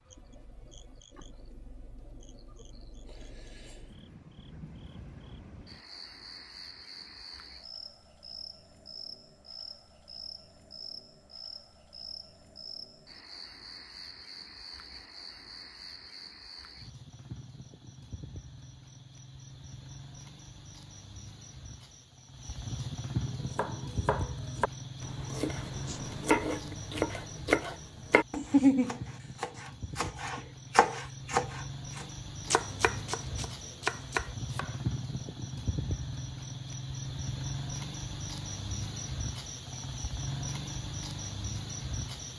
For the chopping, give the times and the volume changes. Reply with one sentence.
You can hear the chopping from 23.2 to 34.8 s, getting louder then quieter.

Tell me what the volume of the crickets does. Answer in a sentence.
The volume of the crickets goes up.